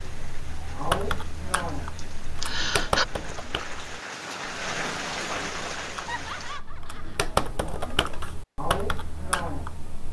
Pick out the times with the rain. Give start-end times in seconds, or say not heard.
0.0-6.6.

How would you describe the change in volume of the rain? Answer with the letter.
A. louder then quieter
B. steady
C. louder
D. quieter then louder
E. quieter
C.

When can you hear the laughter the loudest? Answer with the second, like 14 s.
3 s.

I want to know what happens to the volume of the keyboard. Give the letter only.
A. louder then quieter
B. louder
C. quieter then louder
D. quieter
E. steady
C.